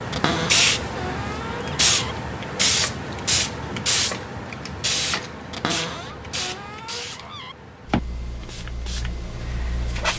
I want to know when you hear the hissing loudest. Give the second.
2 s.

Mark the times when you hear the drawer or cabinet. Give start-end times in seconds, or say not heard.
0.1-2.1, 5.5-7.5.